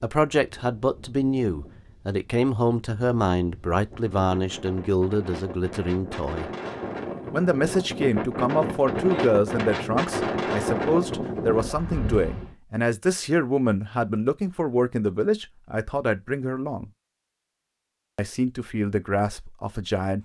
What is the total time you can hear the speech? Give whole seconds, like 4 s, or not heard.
18 s.